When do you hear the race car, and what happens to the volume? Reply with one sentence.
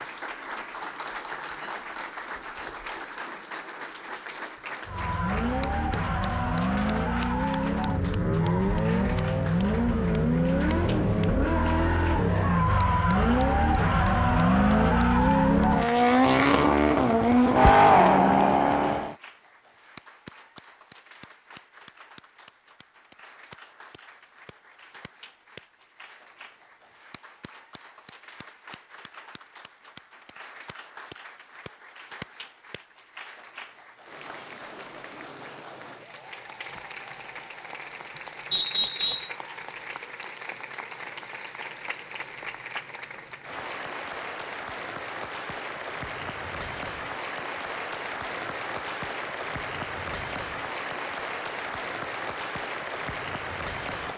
You can hear the race car from 4.8 to 19.1 s, getting louder.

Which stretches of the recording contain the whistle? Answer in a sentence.
You can hear the whistle from 38.5 to 39.4 s.